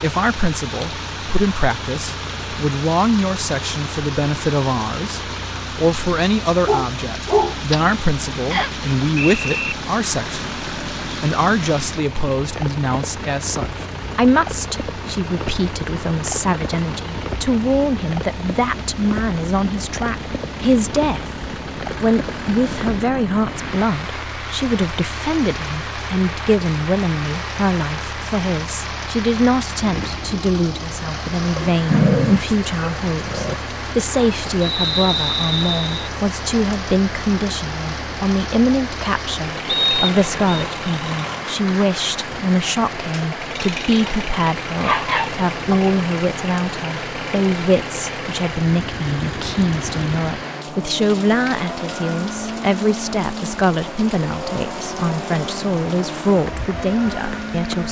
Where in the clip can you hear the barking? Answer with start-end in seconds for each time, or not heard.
6.7-7.8, 31.6-33.5, 44.8-45.8.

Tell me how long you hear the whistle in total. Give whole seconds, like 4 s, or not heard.
4 s.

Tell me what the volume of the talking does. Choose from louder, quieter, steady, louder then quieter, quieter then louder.
steady.